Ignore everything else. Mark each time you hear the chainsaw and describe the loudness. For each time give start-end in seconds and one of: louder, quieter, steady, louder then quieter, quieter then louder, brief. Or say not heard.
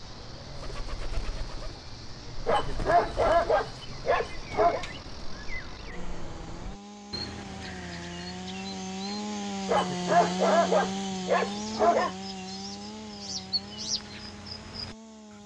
0.0-15.4 louder then quieter.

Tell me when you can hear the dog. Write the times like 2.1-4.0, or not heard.
2.5-4.8, 9.7-12.1.